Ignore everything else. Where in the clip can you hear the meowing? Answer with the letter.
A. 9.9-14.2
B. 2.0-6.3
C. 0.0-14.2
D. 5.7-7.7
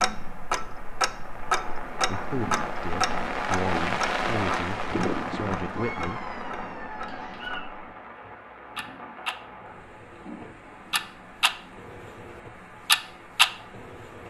D.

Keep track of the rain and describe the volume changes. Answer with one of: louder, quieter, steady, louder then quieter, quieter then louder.
louder then quieter.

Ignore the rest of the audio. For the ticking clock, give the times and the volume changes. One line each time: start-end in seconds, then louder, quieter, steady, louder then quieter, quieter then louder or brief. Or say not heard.
0.0-14.2 quieter then louder.